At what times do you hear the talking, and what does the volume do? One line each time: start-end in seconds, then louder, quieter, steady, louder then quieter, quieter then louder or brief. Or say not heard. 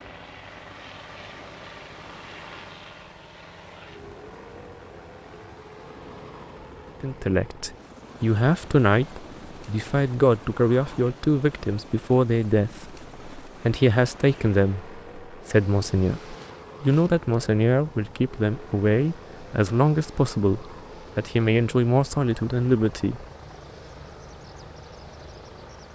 7.0-23.2 steady.